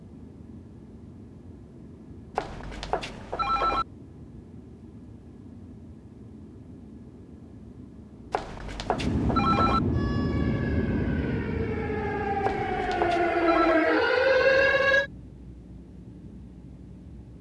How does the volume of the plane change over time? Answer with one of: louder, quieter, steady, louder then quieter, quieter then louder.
louder then quieter.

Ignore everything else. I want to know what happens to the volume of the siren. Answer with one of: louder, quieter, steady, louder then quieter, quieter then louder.
louder.